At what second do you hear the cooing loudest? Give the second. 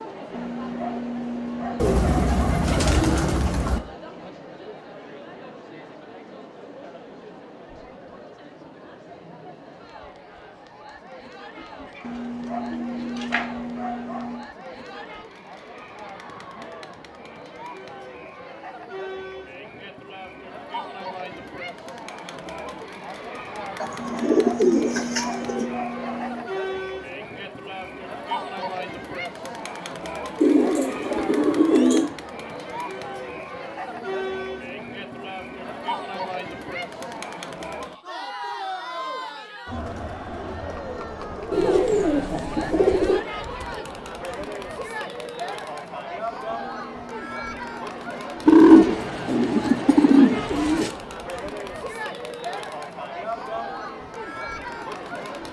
49 s.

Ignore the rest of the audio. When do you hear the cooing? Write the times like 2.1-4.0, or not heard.
1.8-3.8, 12.7-13.4, 23.8-25.6, 30.4-32.1, 41.5-43.2, 48.5-50.9.